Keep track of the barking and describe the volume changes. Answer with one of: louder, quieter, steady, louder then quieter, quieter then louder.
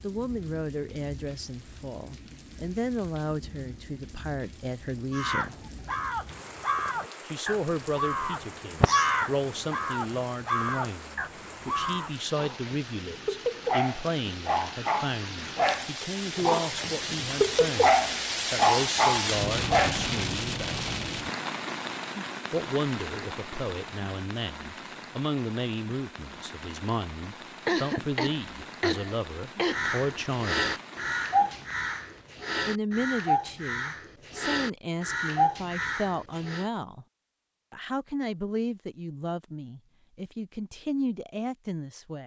louder.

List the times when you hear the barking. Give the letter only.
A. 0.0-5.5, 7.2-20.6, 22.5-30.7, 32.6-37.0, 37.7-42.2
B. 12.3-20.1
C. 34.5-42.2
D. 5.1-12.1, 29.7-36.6
B.